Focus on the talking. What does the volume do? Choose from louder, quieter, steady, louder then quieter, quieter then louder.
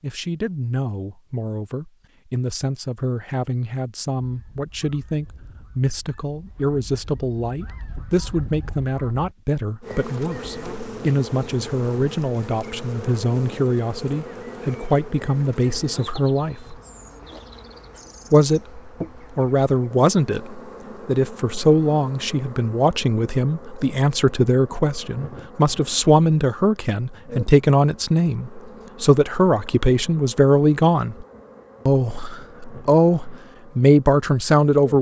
louder.